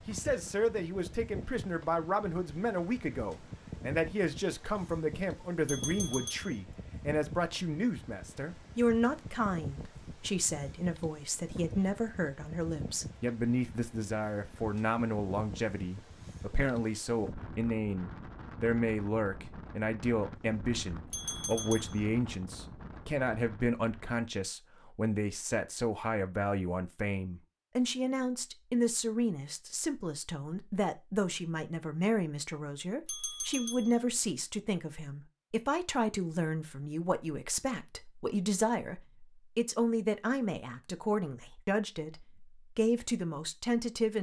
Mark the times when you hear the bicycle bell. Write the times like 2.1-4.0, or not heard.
5.7-6.5, 21.1-22.0, 33.0-34.0.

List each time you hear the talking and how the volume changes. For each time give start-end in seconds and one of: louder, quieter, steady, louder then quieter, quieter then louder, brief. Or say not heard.
0.1-44.1 steady.